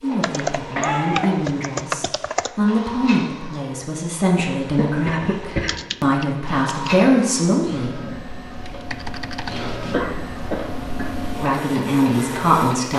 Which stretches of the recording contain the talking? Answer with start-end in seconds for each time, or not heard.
0.0-8.0, 11.3-12.9.